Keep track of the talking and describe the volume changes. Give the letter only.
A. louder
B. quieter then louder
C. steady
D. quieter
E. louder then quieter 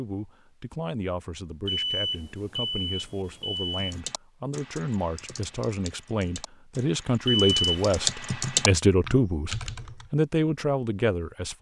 A.